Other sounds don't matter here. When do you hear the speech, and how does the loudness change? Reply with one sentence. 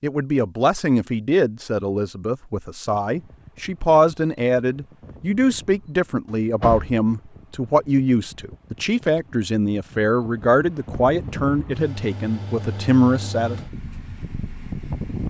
The speech can be heard from 0.0 to 13.6 s, at a steady volume.